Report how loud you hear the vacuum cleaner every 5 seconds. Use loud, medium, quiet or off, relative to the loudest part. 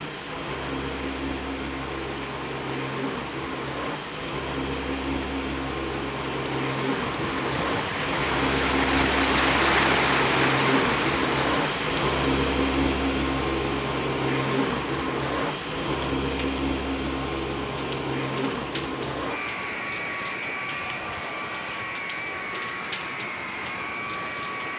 medium, loud, loud, loud, medium.